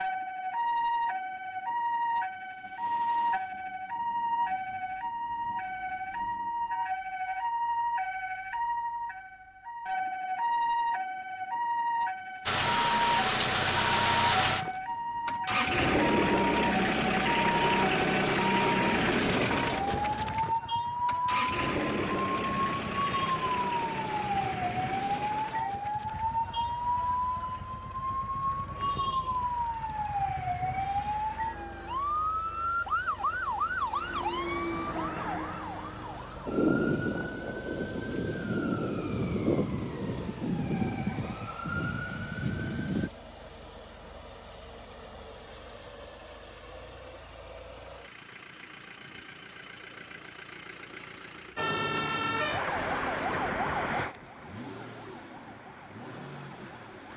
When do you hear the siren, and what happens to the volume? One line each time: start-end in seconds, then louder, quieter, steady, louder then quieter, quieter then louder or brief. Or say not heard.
0.0-43.1 steady
51.5-57.1 quieter.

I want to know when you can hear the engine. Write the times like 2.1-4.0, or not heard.
12.4-57.1.